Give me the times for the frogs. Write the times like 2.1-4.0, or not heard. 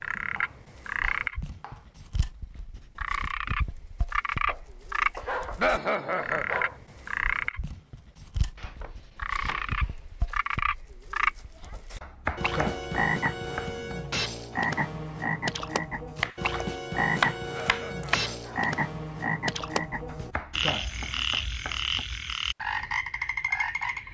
0.0-24.1.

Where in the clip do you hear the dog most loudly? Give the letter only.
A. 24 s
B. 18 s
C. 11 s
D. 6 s
D.